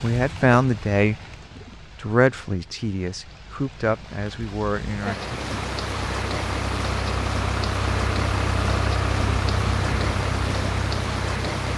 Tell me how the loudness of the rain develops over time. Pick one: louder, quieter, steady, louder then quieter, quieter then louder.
louder.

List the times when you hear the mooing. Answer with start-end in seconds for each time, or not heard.
not heard.